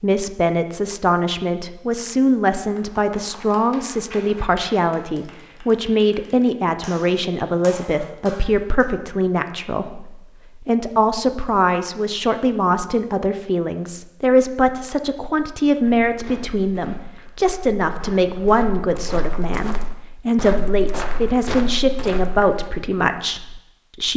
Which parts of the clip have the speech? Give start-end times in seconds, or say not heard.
0.0-24.1.